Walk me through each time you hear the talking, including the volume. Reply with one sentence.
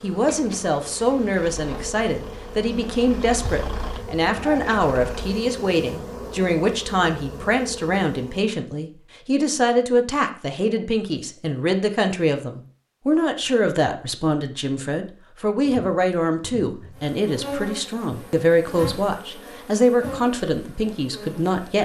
The talking can be heard from 0.0 to 21.8 s, at a steady volume.